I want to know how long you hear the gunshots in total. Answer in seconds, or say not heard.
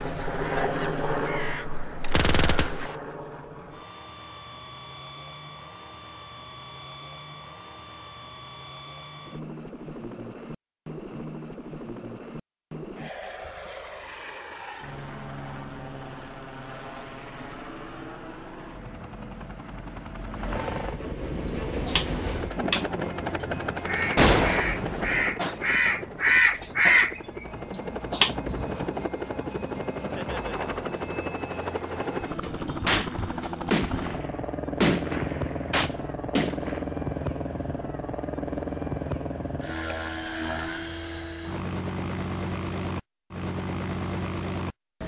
6 s.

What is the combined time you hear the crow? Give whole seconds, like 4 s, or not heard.
10 s.